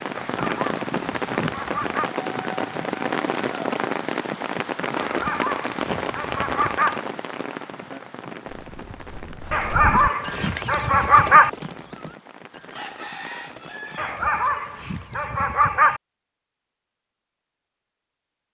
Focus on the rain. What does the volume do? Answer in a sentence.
The loudness of the rain goes down.